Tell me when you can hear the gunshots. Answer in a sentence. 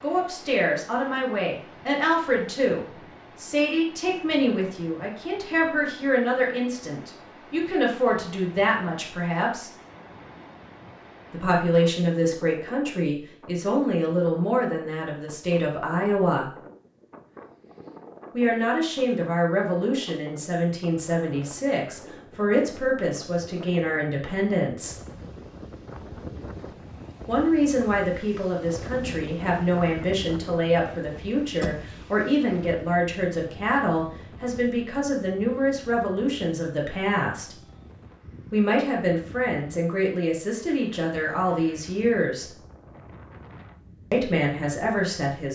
You can hear the gunshots from 31.6 to 32.2 s.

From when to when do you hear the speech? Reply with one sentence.
The speech can be heard from 0.0 to 9.7 s, from 11.3 to 16.5 s, from 18.3 to 24.9 s, from 27.2 to 37.5 s, from 38.5 to 42.5 s and from 44.1 to 45.5 s.